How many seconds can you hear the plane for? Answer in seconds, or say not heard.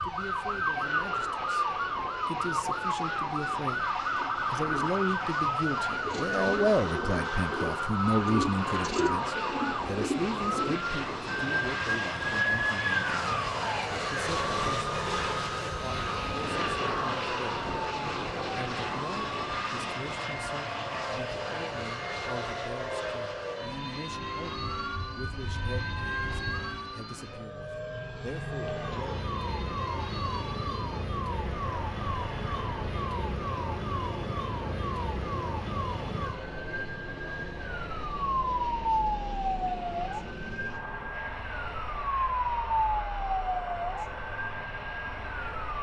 46 s.